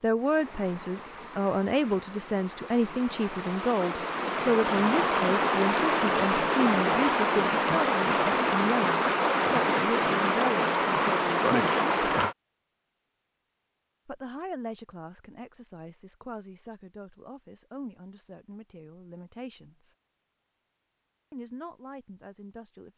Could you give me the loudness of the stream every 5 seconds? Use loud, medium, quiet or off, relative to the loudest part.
medium, loud, loud, off, off.